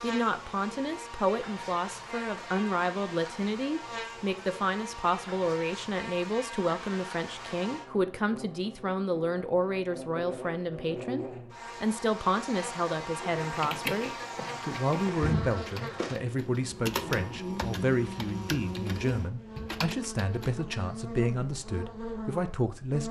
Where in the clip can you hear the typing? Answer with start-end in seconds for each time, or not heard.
13.4-20.5.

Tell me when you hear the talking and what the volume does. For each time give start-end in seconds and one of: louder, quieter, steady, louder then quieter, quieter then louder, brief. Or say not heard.
0.0-23.0 steady.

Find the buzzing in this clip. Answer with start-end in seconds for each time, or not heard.
0.0-23.0.